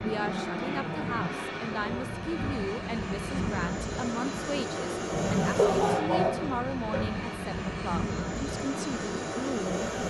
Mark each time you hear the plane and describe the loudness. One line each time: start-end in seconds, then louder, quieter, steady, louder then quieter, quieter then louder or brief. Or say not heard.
0.0-10.0 steady.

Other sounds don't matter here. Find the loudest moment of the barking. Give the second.
6 s.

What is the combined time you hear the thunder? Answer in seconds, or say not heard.
2 s.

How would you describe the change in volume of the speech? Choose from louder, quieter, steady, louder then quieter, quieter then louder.
steady.